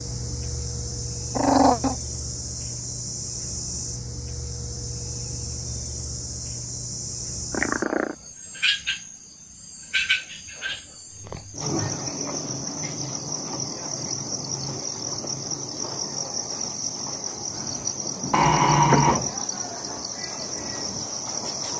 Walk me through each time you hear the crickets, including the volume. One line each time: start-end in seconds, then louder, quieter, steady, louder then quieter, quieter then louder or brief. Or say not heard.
0.0-21.7 steady.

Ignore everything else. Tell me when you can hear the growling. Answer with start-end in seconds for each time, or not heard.
1.4-1.9, 7.5-8.2, 18.3-19.2.